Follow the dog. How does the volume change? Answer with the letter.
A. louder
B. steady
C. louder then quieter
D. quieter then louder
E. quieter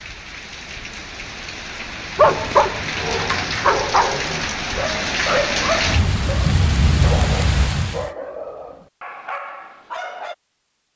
E.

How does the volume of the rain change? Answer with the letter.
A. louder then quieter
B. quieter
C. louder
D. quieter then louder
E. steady
C.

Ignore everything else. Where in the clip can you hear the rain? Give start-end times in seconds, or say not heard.
0.0-8.1.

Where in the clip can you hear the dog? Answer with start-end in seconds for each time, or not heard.
2.1-10.3.